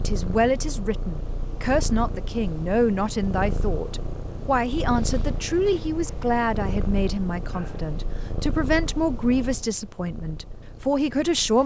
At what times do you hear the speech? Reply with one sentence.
The speech can be heard from 0.0 to 11.6 s.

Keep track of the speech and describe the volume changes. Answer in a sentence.
The loudness of the speech stays about the same.